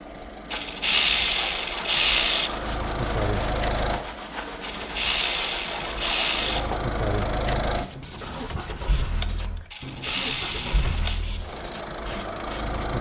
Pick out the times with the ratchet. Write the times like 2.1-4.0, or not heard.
0.5-2.5, 4.6-6.6, 9.7-11.2.